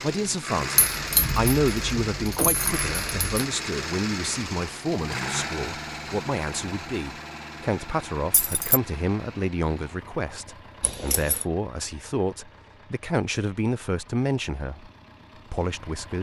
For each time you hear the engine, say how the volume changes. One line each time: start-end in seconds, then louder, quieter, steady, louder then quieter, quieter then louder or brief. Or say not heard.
0.0-16.1 quieter.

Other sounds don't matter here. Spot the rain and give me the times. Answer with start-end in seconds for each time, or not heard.
not heard.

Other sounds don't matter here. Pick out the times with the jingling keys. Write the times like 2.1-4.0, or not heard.
0.8-3.5, 8.3-8.8, 10.8-11.4.